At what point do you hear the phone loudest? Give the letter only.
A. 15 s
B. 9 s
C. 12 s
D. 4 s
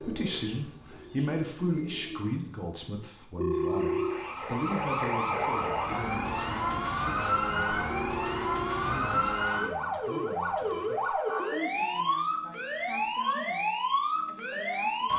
D.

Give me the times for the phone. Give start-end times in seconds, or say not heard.
3.4-4.2, 8.0-9.0.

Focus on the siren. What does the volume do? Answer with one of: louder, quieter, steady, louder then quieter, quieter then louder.
steady.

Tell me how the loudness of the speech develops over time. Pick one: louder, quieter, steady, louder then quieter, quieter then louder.
quieter.